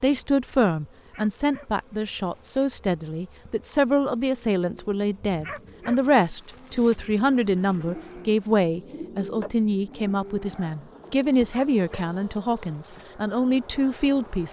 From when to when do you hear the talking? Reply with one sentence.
The talking can be heard from 0.0 to 14.4 s.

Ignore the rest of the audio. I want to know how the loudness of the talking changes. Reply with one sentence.
The loudness of the talking stays about the same.